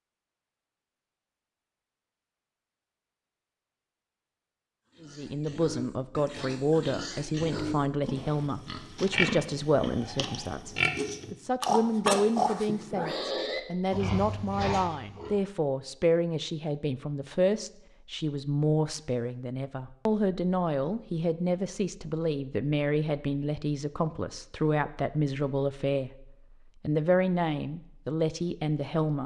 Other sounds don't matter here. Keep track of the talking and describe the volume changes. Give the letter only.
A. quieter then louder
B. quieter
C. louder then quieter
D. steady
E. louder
D.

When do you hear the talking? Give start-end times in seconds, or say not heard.
5.0-29.2.